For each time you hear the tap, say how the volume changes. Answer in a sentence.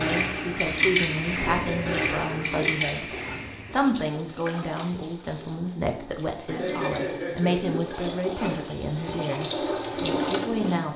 You can hear the tap from 0.0 to 10.9 s, getting quieter then louder.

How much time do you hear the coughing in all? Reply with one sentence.
You can hear the coughing for 4 seconds altogether.